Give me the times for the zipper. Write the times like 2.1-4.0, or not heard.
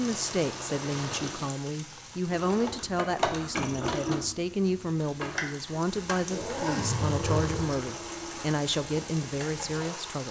0.9-1.5, 6.3-7.8.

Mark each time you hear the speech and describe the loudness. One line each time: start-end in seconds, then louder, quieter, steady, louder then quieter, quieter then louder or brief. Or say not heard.
0.0-10.2 steady.